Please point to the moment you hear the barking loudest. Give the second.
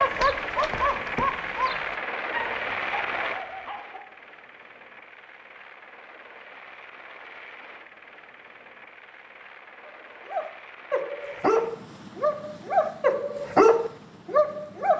14 s.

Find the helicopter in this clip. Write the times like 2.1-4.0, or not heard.
0.0-14.9.